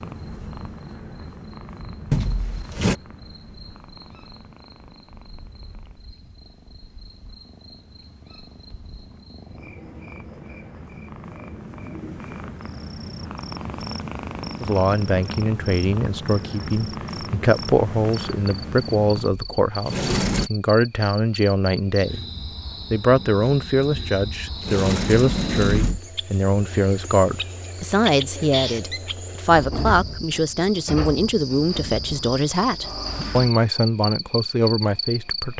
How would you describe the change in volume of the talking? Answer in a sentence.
The loudness of the talking stays about the same.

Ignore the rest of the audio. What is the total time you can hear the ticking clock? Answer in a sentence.
You can't hear the ticking clock here.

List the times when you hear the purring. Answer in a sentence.
You can hear the purring from 0.0 to 19.3 s.